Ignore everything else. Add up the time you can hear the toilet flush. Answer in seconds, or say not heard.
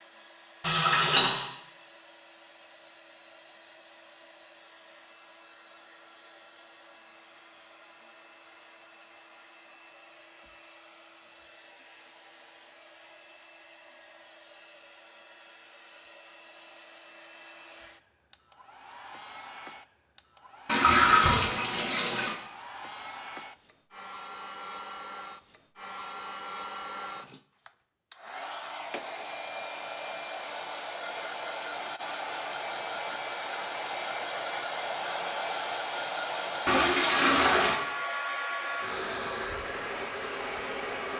4 s.